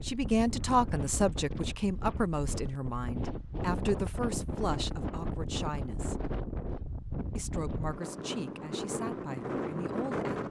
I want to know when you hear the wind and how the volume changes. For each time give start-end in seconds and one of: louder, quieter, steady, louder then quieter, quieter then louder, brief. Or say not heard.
0.0-10.4 steady.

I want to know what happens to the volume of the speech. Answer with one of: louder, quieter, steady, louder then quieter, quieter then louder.
quieter.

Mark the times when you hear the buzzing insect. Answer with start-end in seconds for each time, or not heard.
not heard.